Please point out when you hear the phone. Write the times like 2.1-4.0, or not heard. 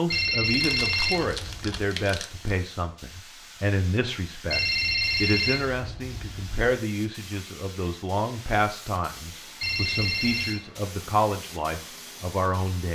0.1-1.9, 4.5-6.7, 9.6-10.6.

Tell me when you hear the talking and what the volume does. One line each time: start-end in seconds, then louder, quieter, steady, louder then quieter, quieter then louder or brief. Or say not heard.
0.0-12.8 steady.